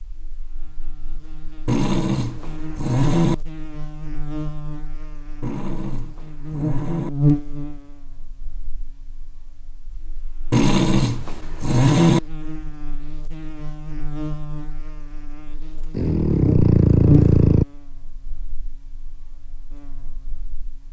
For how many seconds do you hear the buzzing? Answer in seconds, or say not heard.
21 s.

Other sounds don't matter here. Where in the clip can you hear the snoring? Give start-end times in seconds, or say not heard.
1.6-3.4, 5.4-7.1, 10.5-12.2, 15.9-17.6.